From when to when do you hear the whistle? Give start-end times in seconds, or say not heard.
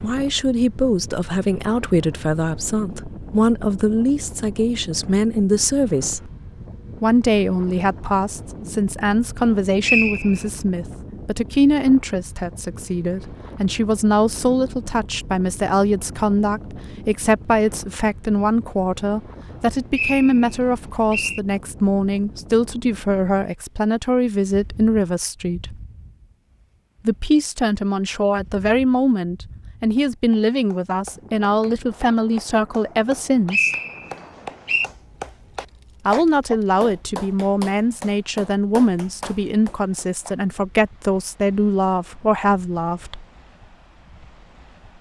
9.8-10.4, 19.9-21.4, 33.5-34.9.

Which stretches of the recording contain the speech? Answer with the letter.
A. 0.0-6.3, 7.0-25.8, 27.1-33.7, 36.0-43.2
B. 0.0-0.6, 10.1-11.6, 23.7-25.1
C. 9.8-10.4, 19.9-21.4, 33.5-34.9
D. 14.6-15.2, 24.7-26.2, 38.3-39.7
A.